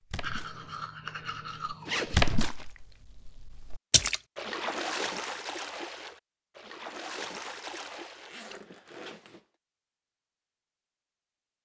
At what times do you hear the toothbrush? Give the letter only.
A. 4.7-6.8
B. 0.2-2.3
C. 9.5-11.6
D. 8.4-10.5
B.